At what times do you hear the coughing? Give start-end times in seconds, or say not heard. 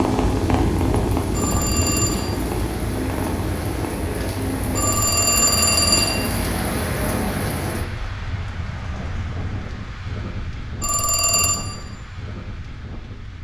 not heard.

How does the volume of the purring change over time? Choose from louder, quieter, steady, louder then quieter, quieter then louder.
quieter.